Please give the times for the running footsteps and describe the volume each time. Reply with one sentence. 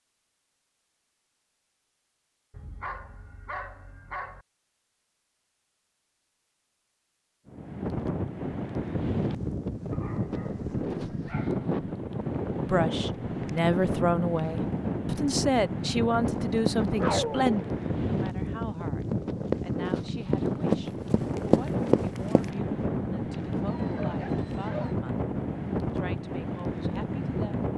The running footsteps can be heard from 16.2 to 22.5 s, getting quieter then louder.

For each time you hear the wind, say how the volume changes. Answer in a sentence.
The wind can be heard from 7.5 to 27.7 s, at a steady volume.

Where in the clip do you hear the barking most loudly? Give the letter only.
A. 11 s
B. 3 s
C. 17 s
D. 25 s
C.